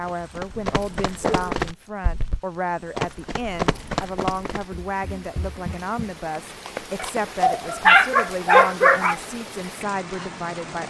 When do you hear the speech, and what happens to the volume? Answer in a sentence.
You can hear the speech from 0.0 to 10.8 s, at a steady volume.